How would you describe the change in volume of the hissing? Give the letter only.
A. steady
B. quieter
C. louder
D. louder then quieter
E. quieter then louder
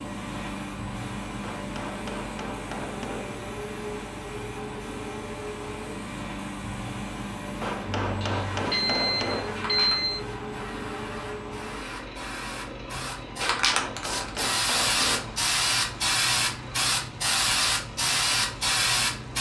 C.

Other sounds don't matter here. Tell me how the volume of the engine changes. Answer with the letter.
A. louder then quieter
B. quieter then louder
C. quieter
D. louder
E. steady
C.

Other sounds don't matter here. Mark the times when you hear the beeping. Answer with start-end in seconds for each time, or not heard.
8.1-10.2.